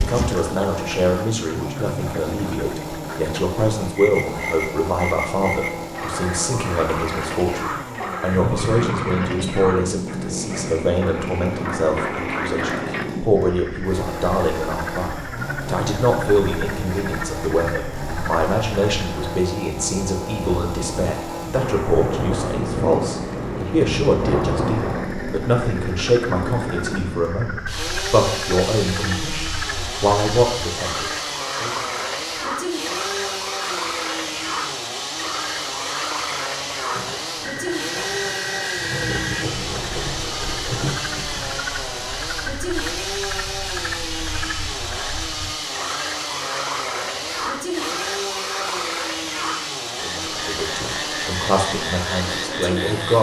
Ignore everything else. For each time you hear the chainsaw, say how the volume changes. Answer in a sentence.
The chainsaw can be heard from 0.0 to 53.1 s, at a steady volume.